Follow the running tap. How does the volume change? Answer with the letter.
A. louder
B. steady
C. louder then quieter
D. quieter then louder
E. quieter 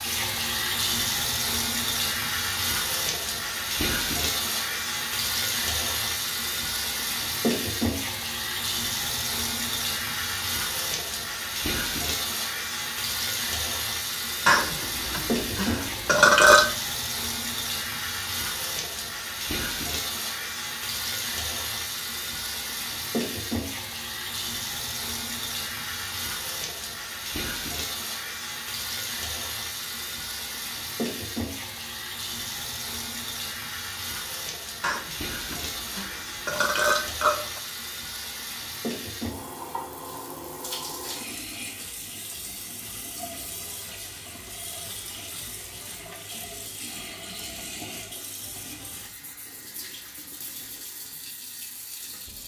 E.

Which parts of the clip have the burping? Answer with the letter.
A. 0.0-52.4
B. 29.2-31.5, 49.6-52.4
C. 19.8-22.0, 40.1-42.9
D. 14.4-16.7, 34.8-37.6
D.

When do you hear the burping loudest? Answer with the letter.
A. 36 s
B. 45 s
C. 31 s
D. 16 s
D.